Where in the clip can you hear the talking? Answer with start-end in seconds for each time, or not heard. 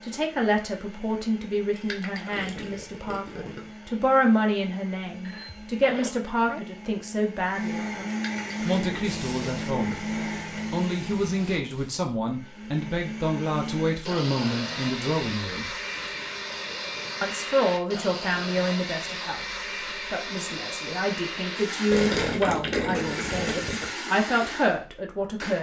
0.0-15.8, 17.2-19.4, 20.1-25.5.